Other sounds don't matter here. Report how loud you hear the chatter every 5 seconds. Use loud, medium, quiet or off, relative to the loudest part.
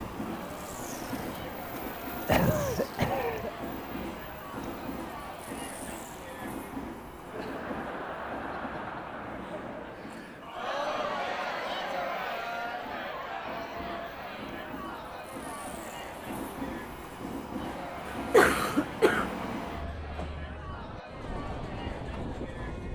medium, medium, loud, medium, medium.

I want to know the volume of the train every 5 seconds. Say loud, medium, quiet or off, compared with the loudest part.
loud, loud, medium, loud, loud.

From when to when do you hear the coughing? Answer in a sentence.
The coughing can be heard from 2.2 to 3.5 s and from 18.1 to 19.3 s.